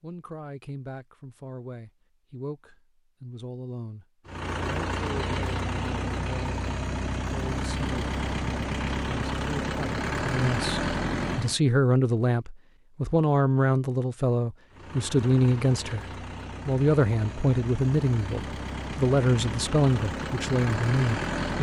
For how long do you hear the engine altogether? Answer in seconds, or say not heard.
14 s.